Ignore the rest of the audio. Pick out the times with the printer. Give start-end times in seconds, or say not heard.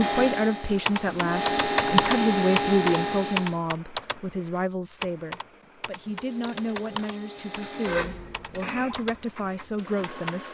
0.0-3.6, 6.0-10.4.